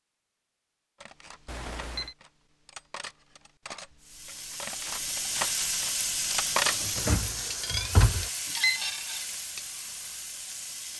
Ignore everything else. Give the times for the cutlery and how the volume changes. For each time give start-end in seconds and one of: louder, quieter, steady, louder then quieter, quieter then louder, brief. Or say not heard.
1.0-10.3 louder then quieter.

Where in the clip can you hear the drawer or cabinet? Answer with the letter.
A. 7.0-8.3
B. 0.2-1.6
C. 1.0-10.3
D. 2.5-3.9
A.